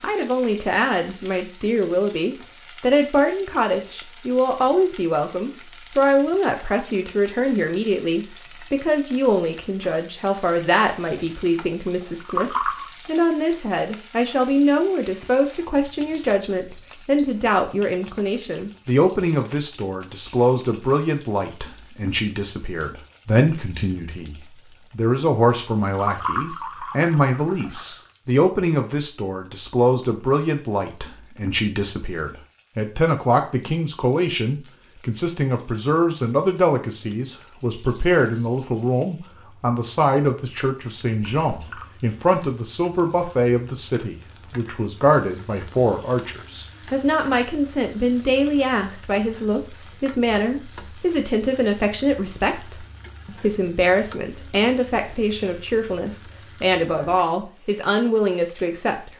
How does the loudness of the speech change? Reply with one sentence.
The loudness of the speech stays about the same.